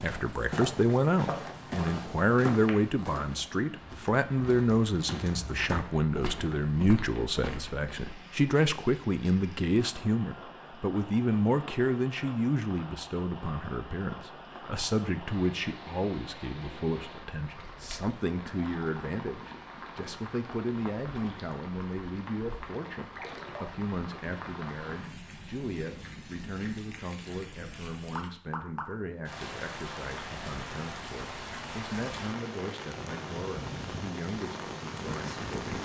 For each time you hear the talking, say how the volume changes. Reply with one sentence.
You can hear the talking from 0.0 to 35.8 s, getting quieter.